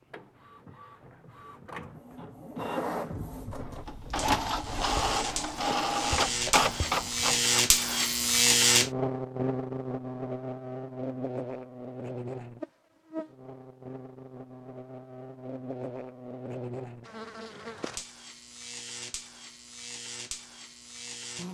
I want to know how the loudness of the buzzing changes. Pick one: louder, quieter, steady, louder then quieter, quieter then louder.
quieter.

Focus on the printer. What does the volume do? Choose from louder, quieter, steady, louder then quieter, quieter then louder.
louder.